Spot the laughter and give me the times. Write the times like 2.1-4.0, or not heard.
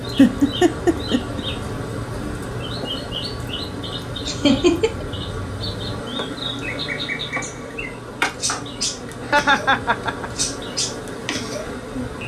0.1-1.4, 4.2-5.0, 9.2-10.4.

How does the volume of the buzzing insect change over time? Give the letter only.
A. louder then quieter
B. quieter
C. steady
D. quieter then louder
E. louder
C.